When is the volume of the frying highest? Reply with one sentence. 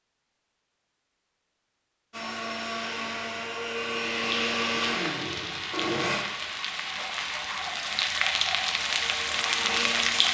The volume of the frying peaks at 10 seconds.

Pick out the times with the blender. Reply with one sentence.
The blender can be heard from 2.1 to 6.2 s and from 8.7 to 10.2 s.